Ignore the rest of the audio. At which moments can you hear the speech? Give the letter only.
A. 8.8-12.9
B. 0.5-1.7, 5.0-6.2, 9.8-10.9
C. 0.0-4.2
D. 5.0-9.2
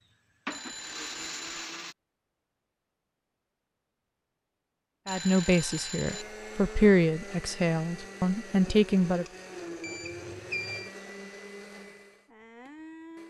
D.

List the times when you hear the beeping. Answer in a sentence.
You can hear the beeping from 0.5 to 1.7 s, from 5.0 to 6.2 s and from 9.8 to 10.9 s.